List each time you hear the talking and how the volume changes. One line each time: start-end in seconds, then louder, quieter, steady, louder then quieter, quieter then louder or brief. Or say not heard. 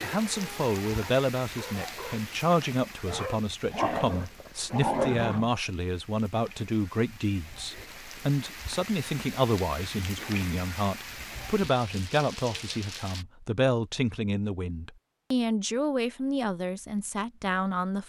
0.0-18.0 steady.